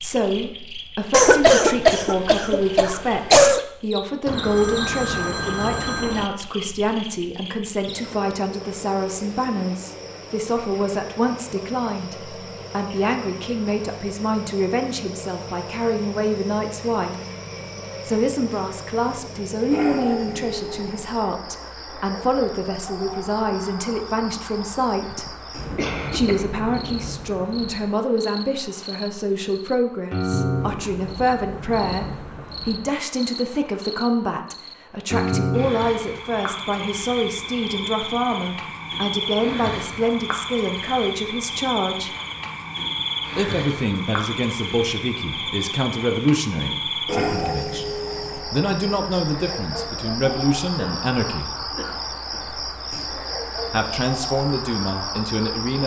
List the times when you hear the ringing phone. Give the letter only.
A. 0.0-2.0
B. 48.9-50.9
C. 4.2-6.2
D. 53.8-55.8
C.